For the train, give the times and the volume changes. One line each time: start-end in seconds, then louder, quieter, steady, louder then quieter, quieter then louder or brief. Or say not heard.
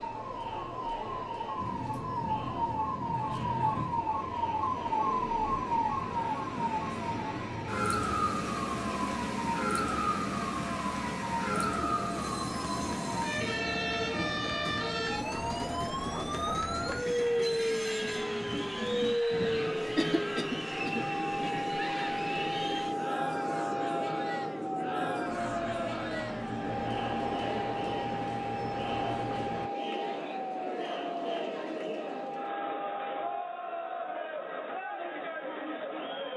1.6-29.7 steady.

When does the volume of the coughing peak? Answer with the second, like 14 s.
20 s.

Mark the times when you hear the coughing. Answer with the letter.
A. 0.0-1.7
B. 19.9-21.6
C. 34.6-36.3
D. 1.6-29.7
B.